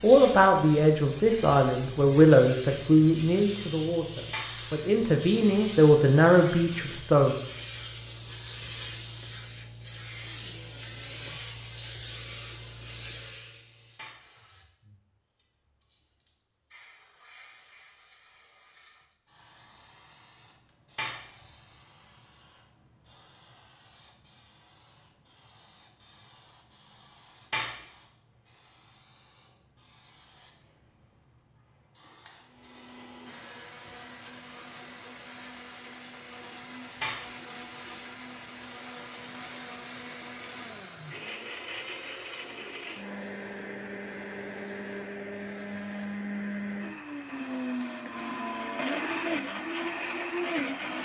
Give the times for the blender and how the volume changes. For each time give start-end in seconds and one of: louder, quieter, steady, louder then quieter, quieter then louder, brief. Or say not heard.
32.4-51.0 louder.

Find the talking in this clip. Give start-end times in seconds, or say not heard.
0.0-7.3.